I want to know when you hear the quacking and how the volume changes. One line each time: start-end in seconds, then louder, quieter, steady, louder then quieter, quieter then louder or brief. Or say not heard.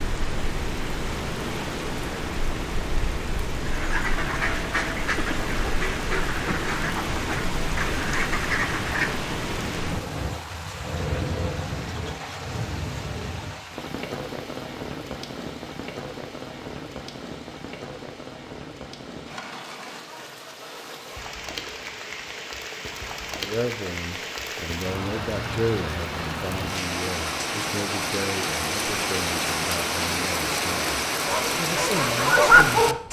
3.6-9.2 steady.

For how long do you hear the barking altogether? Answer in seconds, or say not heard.
2 s.